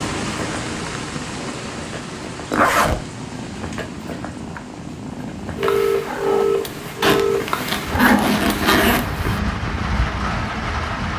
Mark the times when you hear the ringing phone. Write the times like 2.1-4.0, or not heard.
5.5-7.6.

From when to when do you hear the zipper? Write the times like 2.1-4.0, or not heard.
2.5-3.0, 7.0-9.1.